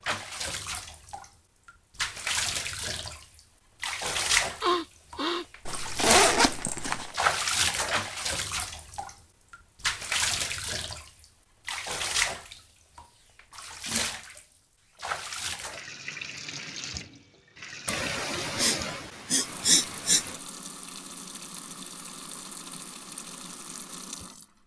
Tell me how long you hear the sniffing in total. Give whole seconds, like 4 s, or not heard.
3 s.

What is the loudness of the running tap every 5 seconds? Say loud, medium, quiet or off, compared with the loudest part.
loud, loud, loud, medium, quiet.